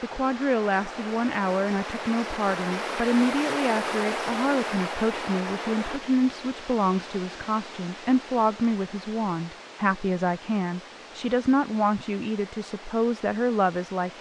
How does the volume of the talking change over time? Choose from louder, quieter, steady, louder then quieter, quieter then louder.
steady.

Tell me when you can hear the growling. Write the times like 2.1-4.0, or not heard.
not heard.